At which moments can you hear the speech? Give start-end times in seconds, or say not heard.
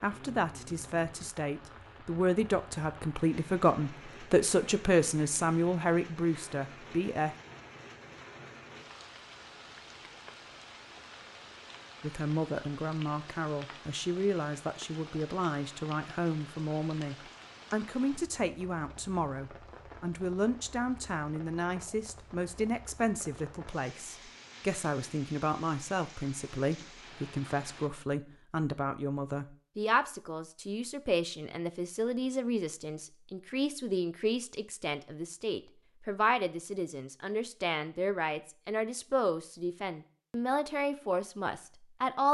0.0-7.3, 12.0-42.2.